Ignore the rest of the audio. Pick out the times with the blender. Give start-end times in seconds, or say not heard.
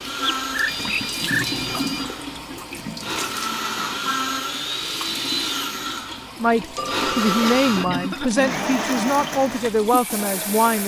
0.0-10.8.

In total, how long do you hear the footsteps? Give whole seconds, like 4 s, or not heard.
not heard.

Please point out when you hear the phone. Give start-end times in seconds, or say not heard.
0.2-2.0, 6.8-7.8.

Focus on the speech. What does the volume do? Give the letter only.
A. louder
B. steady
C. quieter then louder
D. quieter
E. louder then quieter
B.